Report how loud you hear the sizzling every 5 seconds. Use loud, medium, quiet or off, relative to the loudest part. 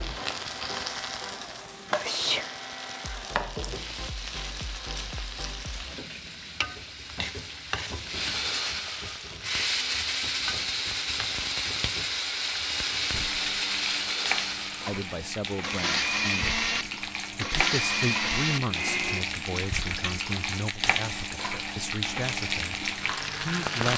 loud, medium, medium, loud, loud.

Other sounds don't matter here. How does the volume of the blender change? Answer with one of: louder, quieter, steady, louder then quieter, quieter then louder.
louder.